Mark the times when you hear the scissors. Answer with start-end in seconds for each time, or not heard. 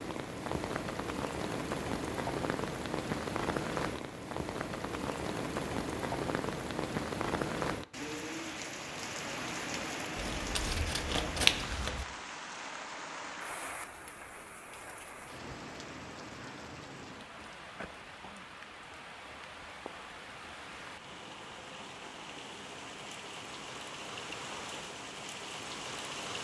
10.2-12.1.